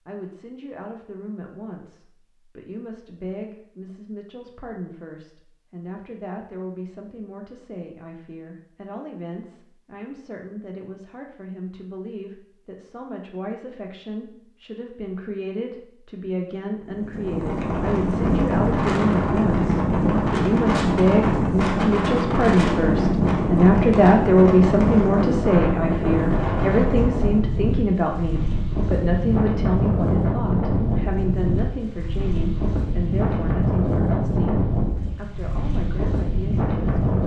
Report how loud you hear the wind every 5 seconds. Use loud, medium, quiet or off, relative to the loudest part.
off, off, off, loud, loud, loud, loud, medium.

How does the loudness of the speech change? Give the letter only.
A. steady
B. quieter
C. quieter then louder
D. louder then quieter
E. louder
D.